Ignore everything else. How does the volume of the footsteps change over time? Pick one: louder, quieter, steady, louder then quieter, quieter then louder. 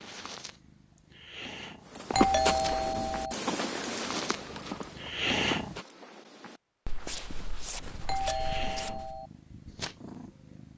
quieter.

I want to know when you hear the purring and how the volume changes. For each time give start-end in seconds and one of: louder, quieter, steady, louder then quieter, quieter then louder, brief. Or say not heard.
0.0-5.8 louder
7.8-10.7 brief.